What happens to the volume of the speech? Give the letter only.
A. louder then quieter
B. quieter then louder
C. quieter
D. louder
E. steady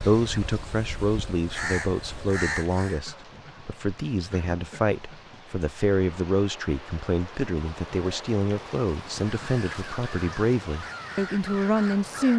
E.